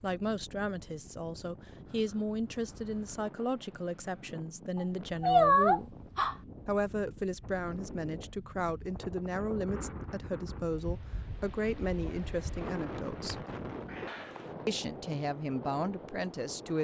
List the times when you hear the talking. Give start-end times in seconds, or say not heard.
0.0-6.0, 6.7-13.4, 14.7-16.7.